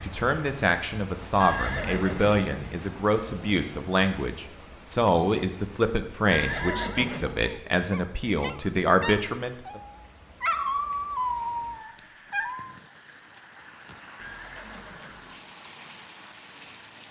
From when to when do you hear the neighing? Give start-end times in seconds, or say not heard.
1.4-2.4, 6.3-7.5, 14.2-15.4.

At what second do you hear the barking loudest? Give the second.
11 s.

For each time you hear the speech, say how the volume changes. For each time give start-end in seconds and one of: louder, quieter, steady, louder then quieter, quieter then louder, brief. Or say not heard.
0.0-9.8 steady.